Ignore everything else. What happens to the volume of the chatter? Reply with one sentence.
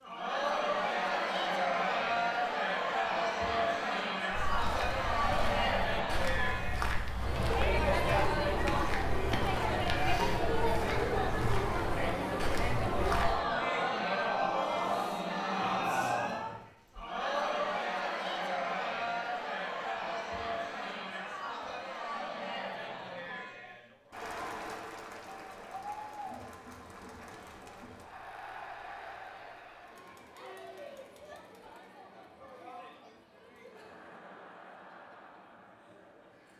The loudness of the chatter goes down.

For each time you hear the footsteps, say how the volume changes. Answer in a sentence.
The footsteps can be heard from 4.3 to 13.4 s, at a steady volume.